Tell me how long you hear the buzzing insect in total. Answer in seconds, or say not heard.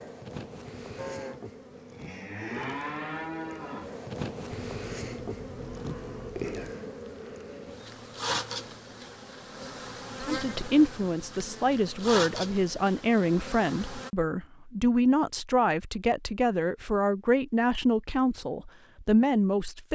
14 s.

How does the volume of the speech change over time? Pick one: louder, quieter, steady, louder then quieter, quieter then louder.
steady.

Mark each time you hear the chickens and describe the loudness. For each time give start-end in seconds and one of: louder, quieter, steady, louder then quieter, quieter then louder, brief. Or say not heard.
not heard.